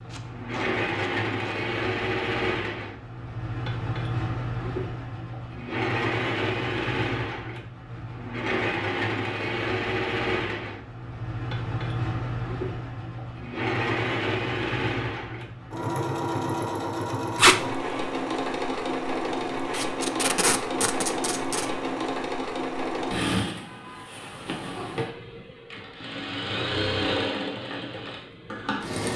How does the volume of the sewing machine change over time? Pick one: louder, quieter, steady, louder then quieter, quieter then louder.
steady.